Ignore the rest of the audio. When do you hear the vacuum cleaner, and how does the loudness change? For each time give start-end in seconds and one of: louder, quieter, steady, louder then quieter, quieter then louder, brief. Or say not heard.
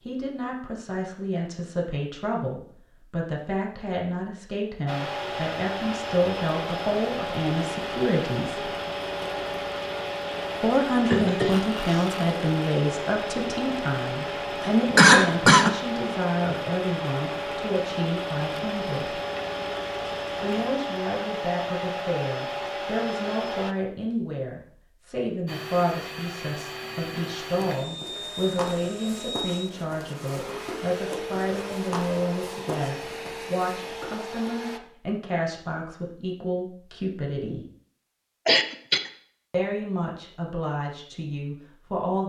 4.8-23.8 steady
25.4-34.8 steady.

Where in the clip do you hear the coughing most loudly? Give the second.
15 s.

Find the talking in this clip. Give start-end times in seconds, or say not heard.
0.1-8.8, 10.6-19.2, 20.4-37.6, 39.5-42.2.